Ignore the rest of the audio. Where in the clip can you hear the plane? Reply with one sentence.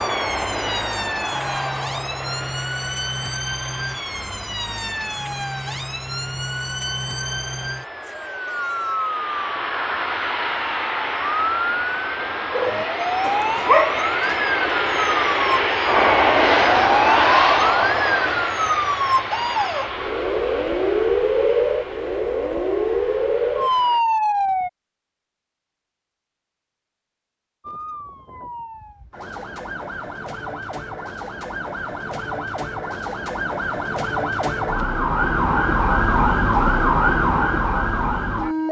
You can hear the plane from 0.0 to 24.1 s.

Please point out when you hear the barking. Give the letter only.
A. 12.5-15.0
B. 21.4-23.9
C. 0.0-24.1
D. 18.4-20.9
A.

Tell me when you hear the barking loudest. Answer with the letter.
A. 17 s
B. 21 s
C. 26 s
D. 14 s
D.